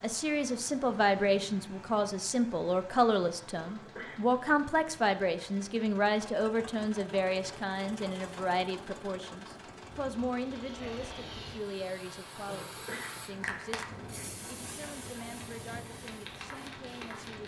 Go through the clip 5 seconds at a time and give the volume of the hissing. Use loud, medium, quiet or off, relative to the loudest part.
off, off, loud, loud.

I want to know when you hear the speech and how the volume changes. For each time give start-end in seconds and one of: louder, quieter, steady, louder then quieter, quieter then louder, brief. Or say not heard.
0.0-17.4 quieter.